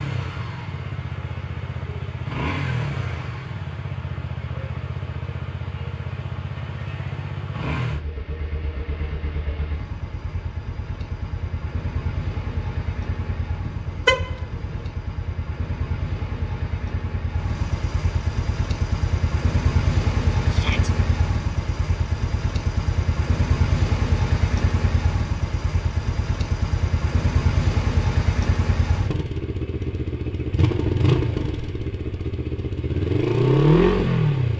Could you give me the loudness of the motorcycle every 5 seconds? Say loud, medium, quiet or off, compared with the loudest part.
medium, medium, quiet, medium, medium, medium, loud.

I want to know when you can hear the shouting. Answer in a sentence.
The shouting can be heard from 20.4 to 20.9 s.